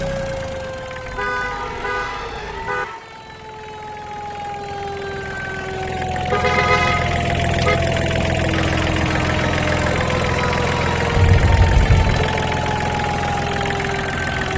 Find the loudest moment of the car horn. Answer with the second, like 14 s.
7 s.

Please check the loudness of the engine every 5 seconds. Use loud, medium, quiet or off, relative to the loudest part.
quiet, loud, loud.